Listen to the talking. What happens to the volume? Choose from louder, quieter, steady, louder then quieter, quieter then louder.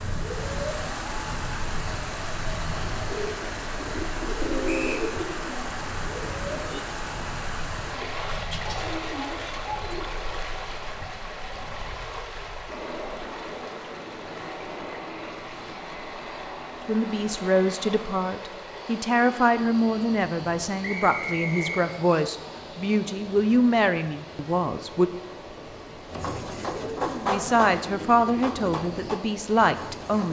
steady.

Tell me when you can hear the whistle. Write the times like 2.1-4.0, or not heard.
4.7-5.1, 20.8-21.9.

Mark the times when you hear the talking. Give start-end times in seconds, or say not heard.
16.9-25.1, 26.8-30.2.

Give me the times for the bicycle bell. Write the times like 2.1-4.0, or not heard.
not heard.